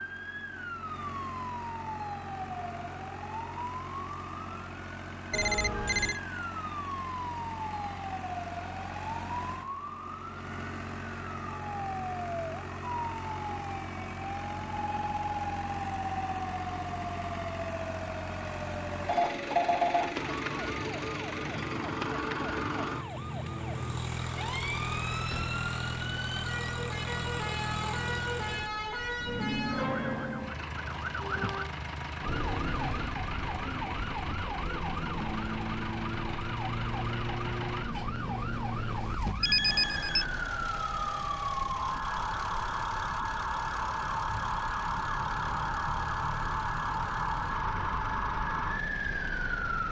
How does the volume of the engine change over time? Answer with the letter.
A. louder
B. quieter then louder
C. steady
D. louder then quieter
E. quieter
D.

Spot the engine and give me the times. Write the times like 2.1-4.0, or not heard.
0.0-49.8.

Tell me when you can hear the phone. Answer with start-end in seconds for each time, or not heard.
5.3-6.2, 19.1-20.1, 39.4-40.2.